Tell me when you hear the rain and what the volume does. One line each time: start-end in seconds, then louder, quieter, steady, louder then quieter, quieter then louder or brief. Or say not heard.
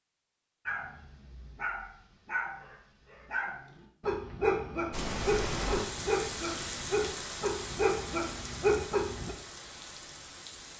4.9-10.7 quieter.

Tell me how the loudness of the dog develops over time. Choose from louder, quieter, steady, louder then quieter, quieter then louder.
louder.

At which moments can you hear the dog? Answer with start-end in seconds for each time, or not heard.
0.7-9.3.